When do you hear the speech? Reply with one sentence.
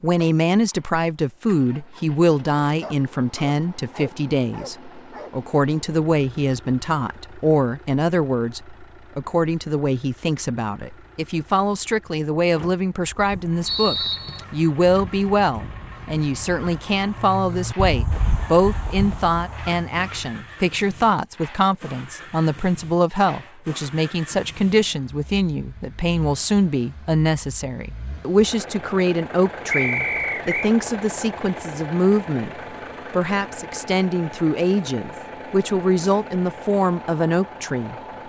You can hear the speech from 0.0 to 38.0 s.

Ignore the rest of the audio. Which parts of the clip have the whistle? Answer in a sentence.
You can hear the whistle from 13.7 to 14.4 s and from 29.7 to 30.7 s.